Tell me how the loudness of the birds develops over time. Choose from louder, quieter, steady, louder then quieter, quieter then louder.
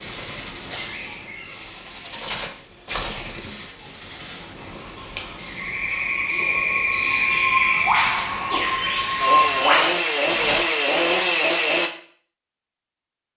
louder.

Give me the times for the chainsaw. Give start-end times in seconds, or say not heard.
9.2-11.9.